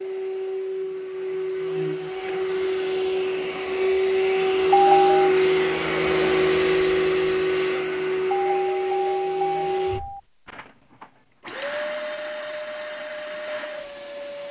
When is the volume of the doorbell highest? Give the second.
5 s.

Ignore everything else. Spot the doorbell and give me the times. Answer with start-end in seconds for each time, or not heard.
4.7-5.3, 8.3-10.2.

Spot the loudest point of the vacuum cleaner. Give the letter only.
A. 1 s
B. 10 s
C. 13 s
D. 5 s
D.